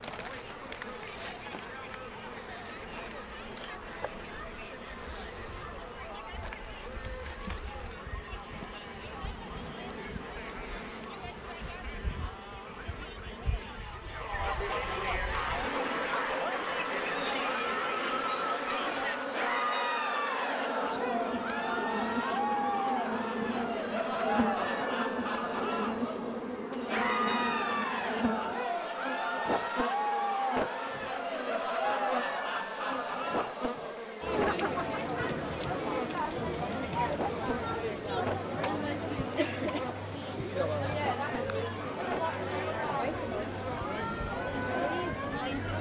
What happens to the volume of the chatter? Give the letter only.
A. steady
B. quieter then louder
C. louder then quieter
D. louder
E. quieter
D.